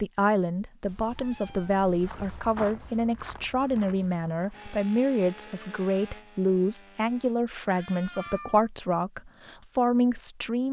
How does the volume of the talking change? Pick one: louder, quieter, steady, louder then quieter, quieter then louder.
steady.